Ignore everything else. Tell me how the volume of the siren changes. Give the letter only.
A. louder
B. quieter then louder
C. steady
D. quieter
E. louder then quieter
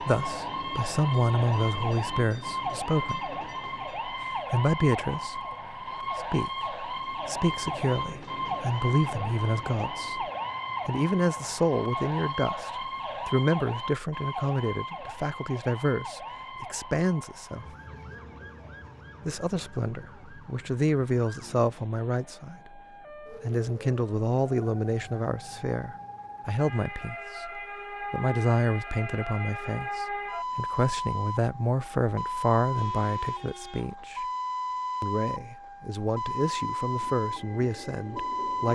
B.